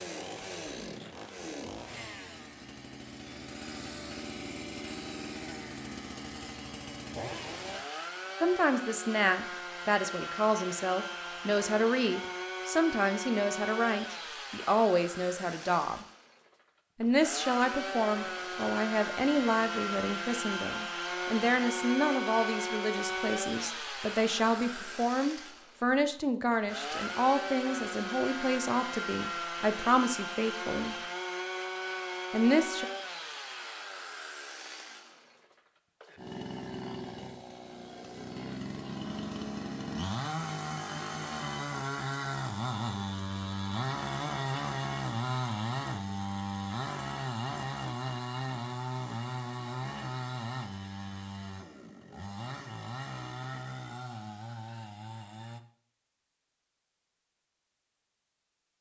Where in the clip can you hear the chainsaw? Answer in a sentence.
The chainsaw can be heard from 0.0 to 55.6 s.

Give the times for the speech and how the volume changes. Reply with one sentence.
You can hear the speech from 8.4 to 16.1 s, at a steady volume; from 17.0 to 30.9 s, at a steady volume; and briefly from 32.3 to 32.9 s.